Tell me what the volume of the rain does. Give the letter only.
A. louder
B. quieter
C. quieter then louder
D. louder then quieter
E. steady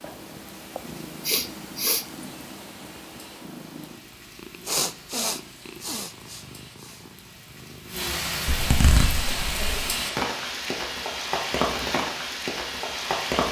A.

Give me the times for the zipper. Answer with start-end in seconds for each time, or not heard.
8.4-9.7.